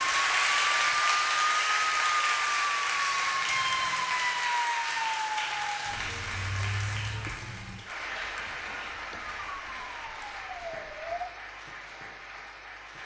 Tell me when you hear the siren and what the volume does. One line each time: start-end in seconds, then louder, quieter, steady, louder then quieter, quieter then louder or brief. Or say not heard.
0.0-11.3 quieter.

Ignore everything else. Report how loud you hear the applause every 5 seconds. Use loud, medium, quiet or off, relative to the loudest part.
loud, medium, quiet.